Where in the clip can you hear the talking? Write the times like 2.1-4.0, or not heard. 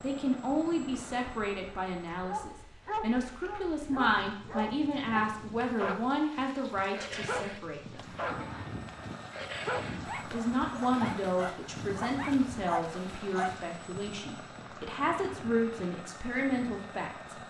0.0-8.2, 10.2-17.4.